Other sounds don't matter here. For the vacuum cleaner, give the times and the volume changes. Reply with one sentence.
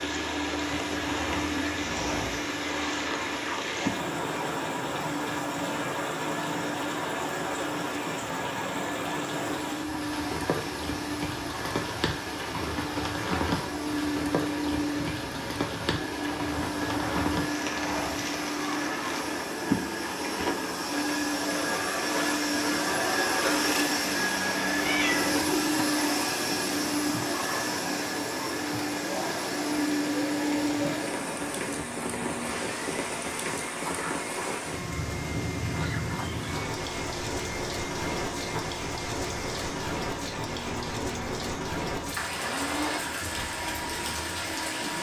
You can hear the vacuum cleaner from 0.0 to 44.9 s, getting louder then quieter.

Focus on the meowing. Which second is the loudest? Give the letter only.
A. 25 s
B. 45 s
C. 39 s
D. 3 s
A.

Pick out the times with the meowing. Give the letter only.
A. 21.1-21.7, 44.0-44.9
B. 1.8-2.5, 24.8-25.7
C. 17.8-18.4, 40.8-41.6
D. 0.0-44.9
B.